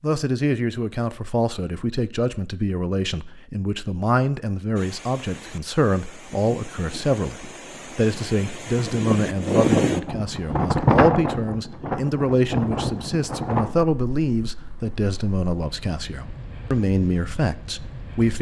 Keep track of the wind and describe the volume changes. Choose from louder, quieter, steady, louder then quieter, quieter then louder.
louder then quieter.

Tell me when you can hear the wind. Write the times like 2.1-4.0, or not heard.
4.8-18.3.